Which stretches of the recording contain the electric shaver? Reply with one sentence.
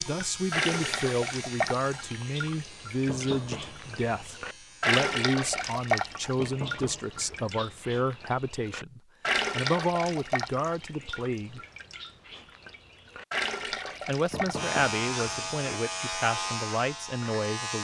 The electric shaver can be heard from 0.0 to 5.0 s and from 14.6 to 17.7 s.